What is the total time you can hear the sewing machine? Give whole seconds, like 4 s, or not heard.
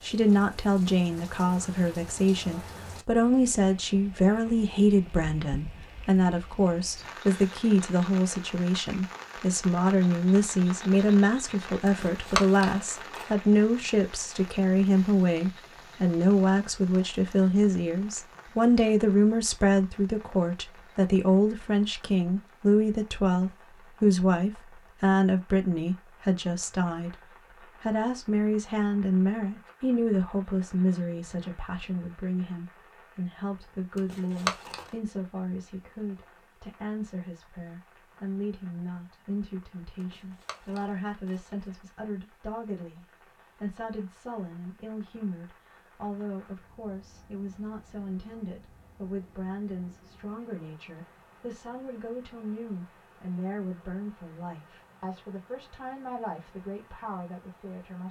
not heard.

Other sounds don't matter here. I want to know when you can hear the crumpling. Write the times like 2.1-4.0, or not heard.
11.8-13.4, 34.0-34.9, 40.0-41.6.